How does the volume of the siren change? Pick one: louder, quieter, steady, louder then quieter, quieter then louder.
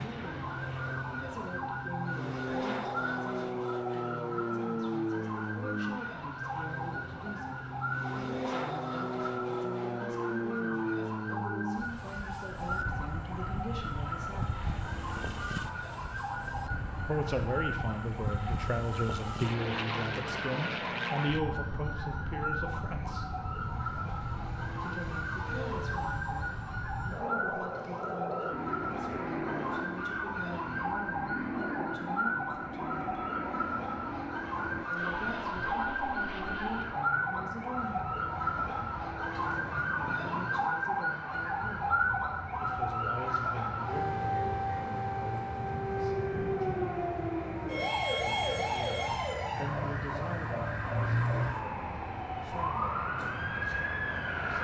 louder.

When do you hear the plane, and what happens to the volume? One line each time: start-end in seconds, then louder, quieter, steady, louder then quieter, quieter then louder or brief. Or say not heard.
0.0-54.6 quieter.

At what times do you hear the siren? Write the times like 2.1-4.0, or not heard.
0.0-54.6.